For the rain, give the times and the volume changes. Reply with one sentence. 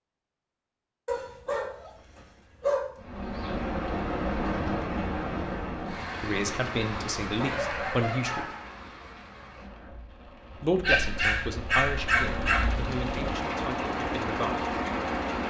The rain can be heard from 3.0 to 15.4 s, getting quieter then louder.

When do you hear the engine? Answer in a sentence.
You can hear the engine from 12.2 to 15.4 s.